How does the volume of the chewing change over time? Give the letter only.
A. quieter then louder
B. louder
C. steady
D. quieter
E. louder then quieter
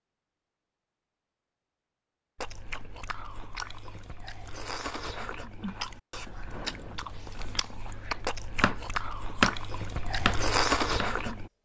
B.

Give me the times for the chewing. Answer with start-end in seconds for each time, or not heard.
2.4-11.5.